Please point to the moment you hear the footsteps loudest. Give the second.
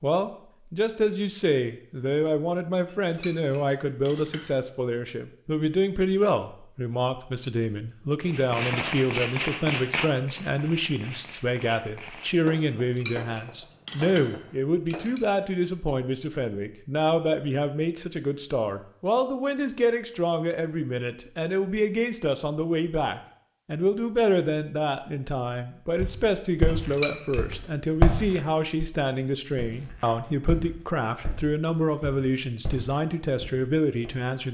28 s.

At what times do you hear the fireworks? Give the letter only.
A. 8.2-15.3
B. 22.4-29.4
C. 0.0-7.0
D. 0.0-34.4
A.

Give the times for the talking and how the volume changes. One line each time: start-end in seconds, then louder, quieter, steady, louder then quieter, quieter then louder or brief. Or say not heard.
0.0-34.4 steady.